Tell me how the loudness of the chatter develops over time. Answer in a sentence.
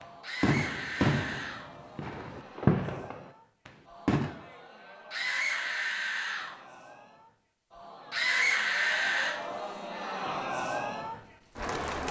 The volume of the chatter goes up.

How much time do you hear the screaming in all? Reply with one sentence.
You can hear the screaming for 4 seconds altogether.